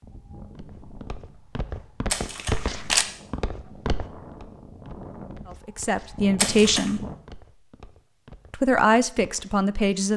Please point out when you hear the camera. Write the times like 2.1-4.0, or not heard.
2.1-3.0, 6.3-7.0.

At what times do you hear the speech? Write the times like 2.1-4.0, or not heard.
5.5-7.0, 8.5-10.1.